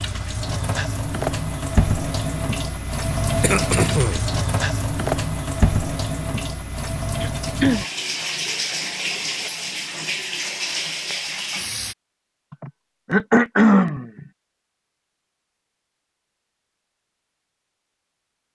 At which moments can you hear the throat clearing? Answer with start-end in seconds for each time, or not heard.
3.4-4.2, 7.2-7.9, 12.5-14.2.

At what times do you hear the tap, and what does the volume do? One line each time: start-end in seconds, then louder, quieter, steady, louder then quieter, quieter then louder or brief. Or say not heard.
0.0-11.9 steady.